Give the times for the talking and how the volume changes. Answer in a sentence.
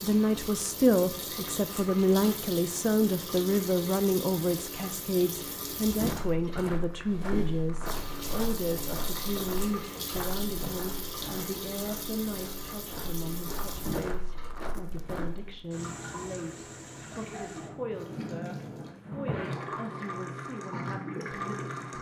You can hear the talking from 0.0 to 21.9 s, getting quieter.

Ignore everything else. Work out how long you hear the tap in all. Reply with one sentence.
The tap can be heard for 22 seconds in total.